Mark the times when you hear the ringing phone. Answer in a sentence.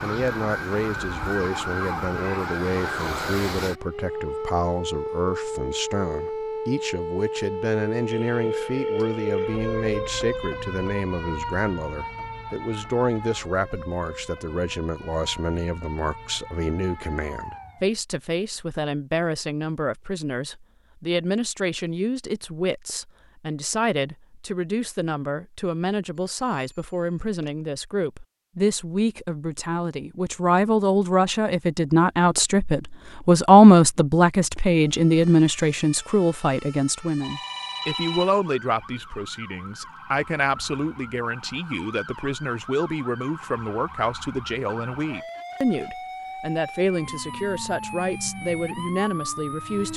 You can hear the ringing phone from 8.1 to 10.1 s, from 26.4 to 27.5 s and from 37.2 to 38.4 s.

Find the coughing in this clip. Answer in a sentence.
The coughing can't be heard in this clip.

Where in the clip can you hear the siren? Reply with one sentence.
You can hear the siren from 0.0 to 18.0 s and from 34.7 to 49.9 s.